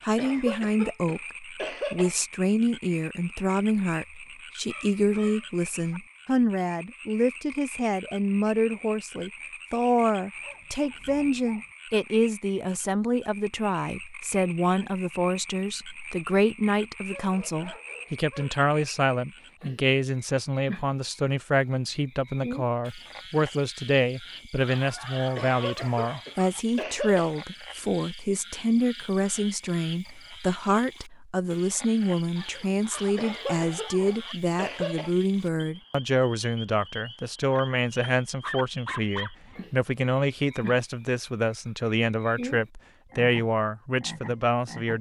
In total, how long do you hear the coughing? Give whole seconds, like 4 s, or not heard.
6 s.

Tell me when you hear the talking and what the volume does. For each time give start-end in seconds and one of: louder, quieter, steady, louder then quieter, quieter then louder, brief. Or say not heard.
0.1-44.9 steady.